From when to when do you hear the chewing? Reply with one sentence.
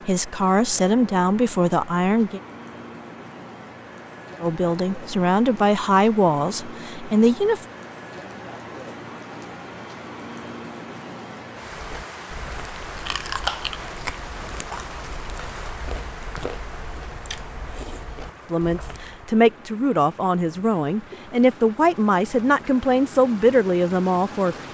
The chewing can be heard from 11.7 to 19.2 s.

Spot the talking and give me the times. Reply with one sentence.
The talking can be heard from 0.1 to 2.4 s, from 4.4 to 7.7 s and from 18.5 to 24.6 s.